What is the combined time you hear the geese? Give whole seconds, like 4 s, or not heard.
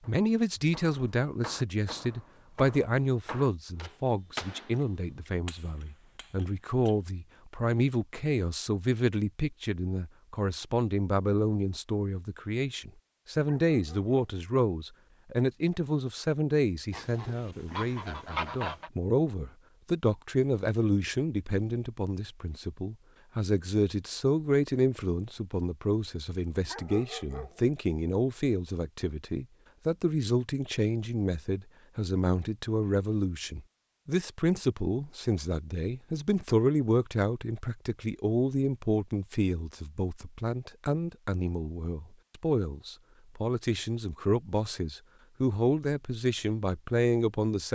2 s.